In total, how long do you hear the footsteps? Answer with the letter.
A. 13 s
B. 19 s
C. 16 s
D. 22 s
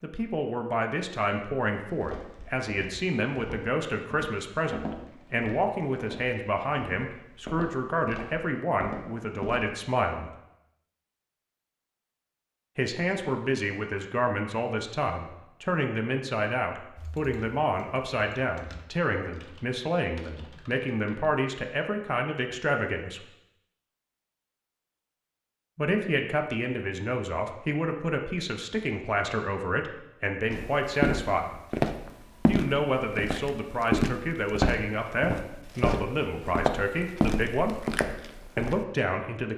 C.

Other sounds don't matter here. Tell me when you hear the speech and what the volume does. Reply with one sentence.
You can hear the speech from 0.0 to 10.3 s, at a steady volume; from 12.8 to 23.2 s, at a steady volume; from 25.8 to 31.6 s, at a steady volume; from 32.5 to 37.9 s, at a steady volume; and briefly from 38.5 to 39.5 s.